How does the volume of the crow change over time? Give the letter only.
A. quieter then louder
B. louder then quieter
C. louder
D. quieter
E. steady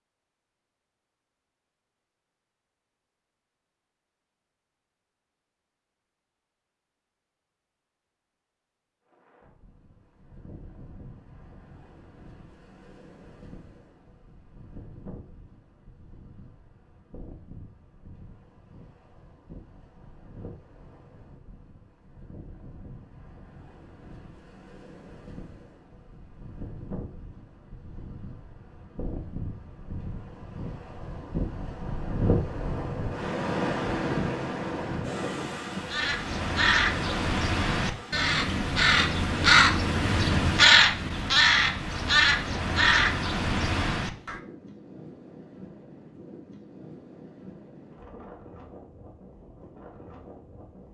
B.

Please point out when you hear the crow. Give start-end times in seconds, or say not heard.
35.9-44.4.